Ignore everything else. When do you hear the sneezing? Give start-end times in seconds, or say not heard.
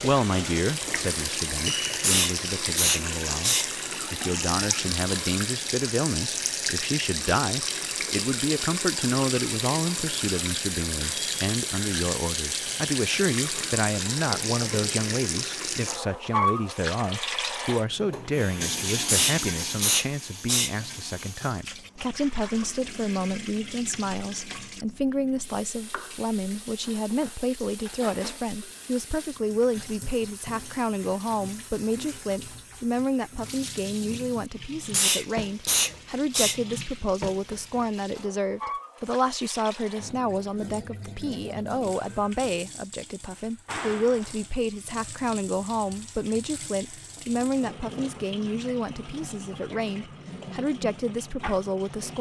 1.9-3.7, 18.9-20.7, 34.9-36.6.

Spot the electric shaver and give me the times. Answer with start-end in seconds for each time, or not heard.
not heard.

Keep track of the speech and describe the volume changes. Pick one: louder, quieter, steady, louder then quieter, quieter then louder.
steady.